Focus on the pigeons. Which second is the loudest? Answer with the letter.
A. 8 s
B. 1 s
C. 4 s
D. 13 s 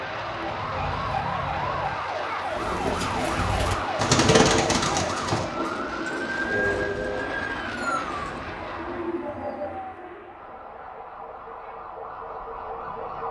C.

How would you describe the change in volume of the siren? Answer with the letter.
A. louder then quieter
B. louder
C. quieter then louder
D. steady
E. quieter
E.